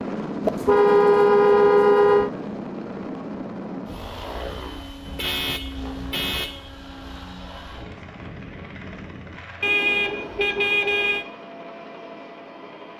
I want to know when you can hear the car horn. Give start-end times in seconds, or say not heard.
0.4-2.3, 5.0-6.6, 9.6-11.2.